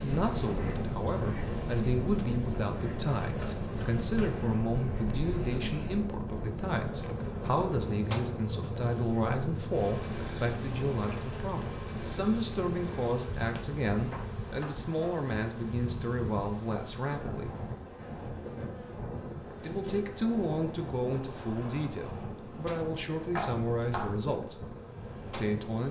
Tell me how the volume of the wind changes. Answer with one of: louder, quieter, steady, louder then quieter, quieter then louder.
quieter.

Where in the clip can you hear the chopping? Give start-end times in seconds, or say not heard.
3.4-4.3, 14.1-15.2, 23.4-24.2.